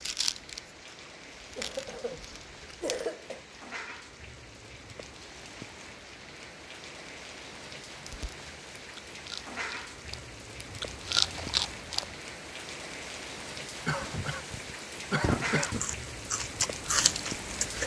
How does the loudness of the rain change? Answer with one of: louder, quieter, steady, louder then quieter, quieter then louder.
louder.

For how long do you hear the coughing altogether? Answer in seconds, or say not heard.
4 s.